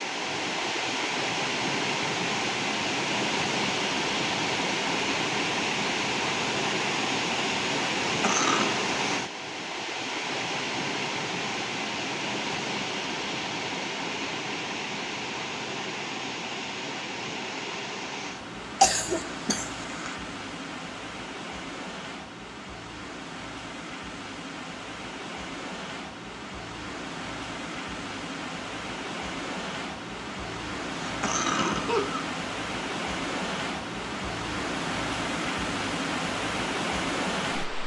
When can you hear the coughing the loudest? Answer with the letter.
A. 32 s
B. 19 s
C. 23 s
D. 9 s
B.